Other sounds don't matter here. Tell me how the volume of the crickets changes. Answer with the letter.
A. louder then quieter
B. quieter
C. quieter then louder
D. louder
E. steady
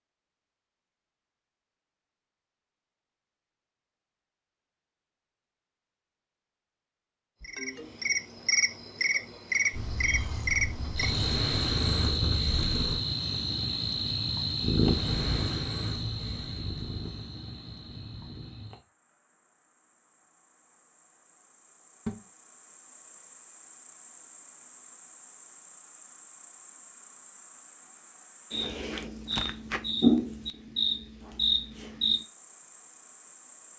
C.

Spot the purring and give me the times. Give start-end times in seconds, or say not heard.
9.7-13.0, 14.6-18.5.